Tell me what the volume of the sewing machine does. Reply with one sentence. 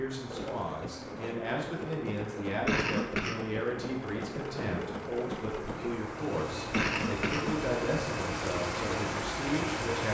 The volume of the sewing machine stays about the same.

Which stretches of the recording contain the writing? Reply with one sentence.
You can't hear the writing here.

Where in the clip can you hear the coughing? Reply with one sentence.
You can hear the coughing from 2.6 to 3.4 s and from 6.7 to 7.7 s.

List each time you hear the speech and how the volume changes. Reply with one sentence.
You can hear the speech from 0.0 to 10.0 s, at a steady volume.